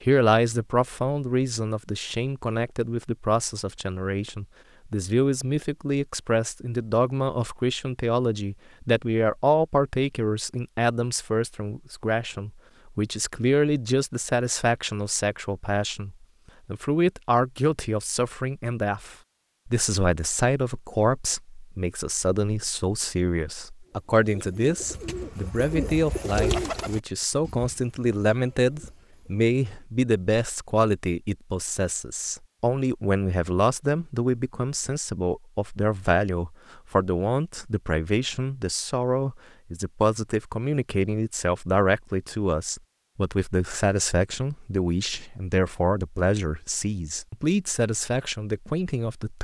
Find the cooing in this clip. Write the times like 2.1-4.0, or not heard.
23.9-29.4.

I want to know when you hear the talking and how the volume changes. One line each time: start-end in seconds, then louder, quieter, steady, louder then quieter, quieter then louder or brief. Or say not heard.
0.0-49.3 steady.